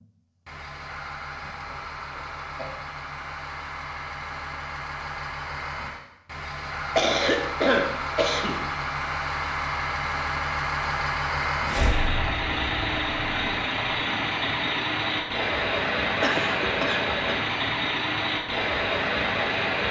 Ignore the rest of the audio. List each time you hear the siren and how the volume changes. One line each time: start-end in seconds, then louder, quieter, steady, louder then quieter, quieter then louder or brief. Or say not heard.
not heard.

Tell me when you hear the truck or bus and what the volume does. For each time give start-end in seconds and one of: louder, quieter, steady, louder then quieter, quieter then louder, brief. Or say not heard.
0.0-19.8 louder.